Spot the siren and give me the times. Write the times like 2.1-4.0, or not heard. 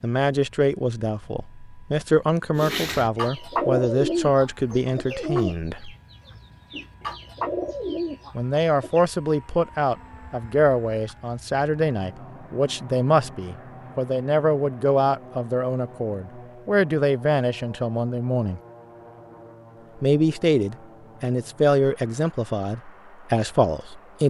not heard.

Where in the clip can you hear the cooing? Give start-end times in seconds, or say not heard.
2.5-9.1.